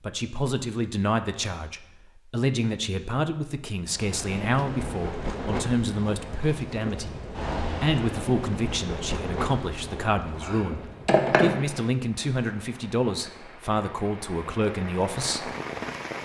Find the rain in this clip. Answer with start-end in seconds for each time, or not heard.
3.9-16.2.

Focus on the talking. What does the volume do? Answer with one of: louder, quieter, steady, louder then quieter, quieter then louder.
steady.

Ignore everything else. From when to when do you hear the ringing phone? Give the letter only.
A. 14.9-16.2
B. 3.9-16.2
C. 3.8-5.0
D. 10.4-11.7
D.